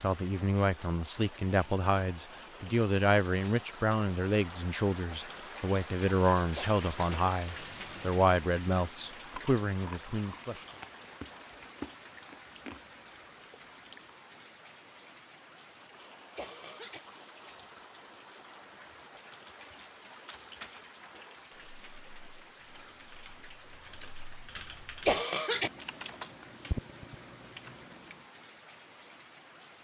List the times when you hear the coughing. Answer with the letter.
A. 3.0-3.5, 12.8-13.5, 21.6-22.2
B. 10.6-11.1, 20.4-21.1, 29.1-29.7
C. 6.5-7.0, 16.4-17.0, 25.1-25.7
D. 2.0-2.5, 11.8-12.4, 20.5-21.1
C.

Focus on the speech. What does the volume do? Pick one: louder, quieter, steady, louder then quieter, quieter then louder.
steady.